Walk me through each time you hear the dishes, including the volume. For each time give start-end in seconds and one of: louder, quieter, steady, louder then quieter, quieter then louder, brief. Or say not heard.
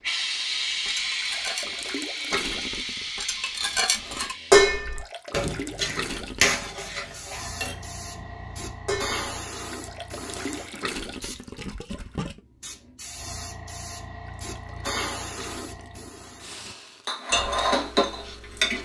0.8-9.2 louder then quieter
17.1-18.7 brief.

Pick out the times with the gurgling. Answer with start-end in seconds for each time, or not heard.
1.2-3.1, 4.8-6.8, 9.7-12.4, 14.2-16.1.